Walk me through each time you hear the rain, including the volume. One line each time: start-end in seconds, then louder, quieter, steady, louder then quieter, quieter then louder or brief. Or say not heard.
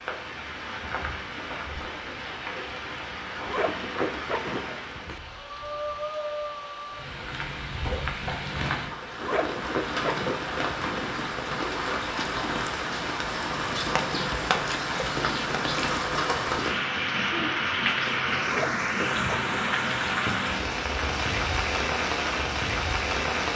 0.0-23.5 louder.